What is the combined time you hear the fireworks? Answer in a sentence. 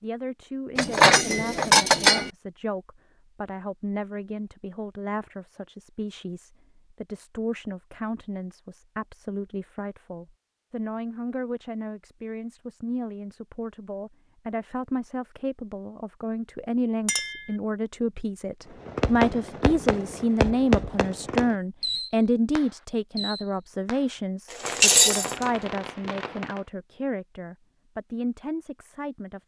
You can hear the fireworks for 8 seconds altogether.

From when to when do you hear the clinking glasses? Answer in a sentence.
The clinking glasses can be heard from 0.8 to 2.3 s, from 17.1 to 17.5 s and from 24.5 to 25.5 s.